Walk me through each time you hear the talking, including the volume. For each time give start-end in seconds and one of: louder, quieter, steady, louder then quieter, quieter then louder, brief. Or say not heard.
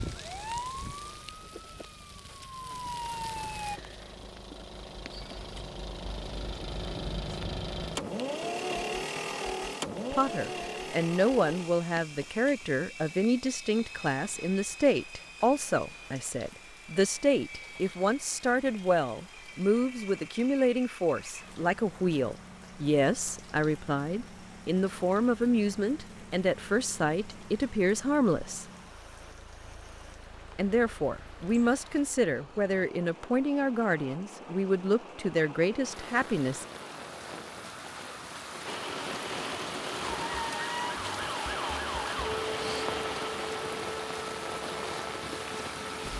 10.1-28.6 steady
30.6-36.6 steady.